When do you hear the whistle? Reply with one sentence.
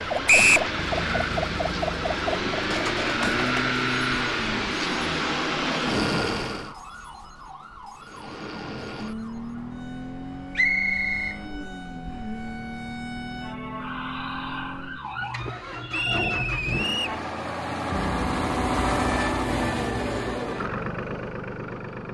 You can hear the whistle from 0.2 to 0.7 s, from 10.6 to 11.3 s and from 15.9 to 17.2 s.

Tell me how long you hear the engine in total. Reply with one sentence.
You can hear the engine for 21 seconds altogether.